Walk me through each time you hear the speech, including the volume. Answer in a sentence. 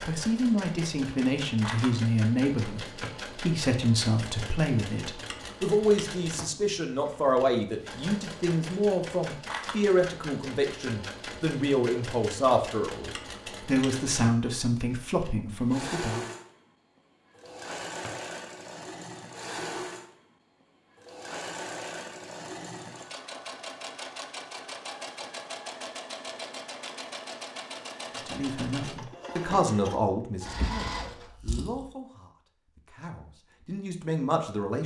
The speech can be heard from 0.1 to 16.3 s, at a steady volume; and from 28.1 to 34.8 s, getting quieter then louder.